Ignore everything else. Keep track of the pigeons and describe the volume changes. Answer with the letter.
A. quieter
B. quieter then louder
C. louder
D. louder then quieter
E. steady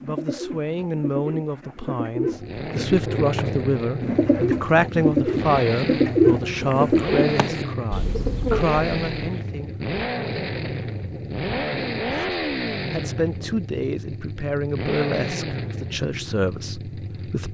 D.